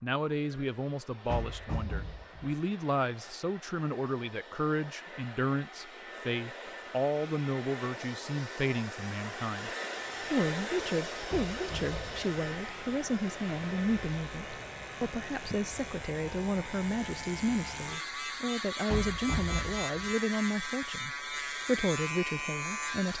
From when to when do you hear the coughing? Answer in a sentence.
The coughing can't be heard in this clip.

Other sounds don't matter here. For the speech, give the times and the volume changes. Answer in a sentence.
The speech can be heard from 0.0 to 23.1 s, at a steady volume.